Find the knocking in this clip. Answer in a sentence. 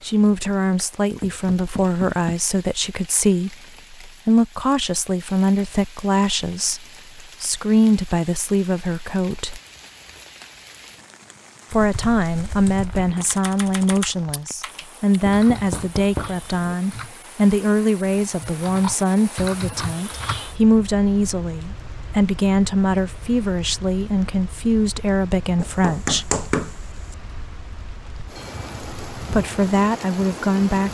The knocking can be heard from 1.2 to 2.5 s, from 15.3 to 16.8 s and from 25.6 to 26.7 s.